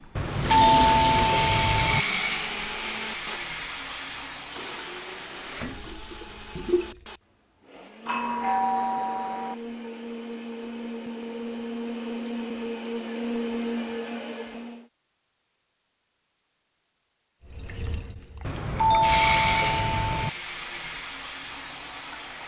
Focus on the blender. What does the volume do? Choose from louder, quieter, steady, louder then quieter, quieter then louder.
quieter then louder.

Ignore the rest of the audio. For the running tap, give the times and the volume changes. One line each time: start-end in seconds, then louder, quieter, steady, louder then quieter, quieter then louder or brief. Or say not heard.
0.2-7.0 quieter
17.5-22.4 louder then quieter.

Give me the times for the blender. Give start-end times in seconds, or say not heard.
0.0-14.8.